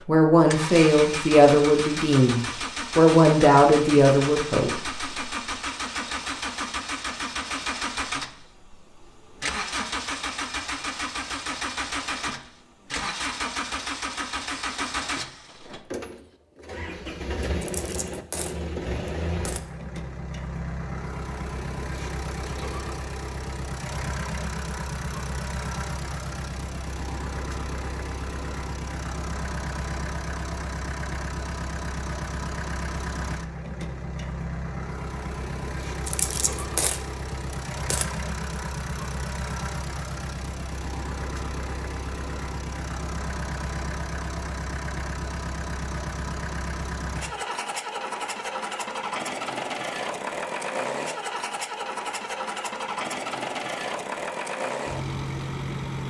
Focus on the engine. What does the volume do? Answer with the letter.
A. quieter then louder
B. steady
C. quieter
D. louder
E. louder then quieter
B.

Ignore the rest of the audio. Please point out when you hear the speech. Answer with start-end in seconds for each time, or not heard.
0.1-5.0.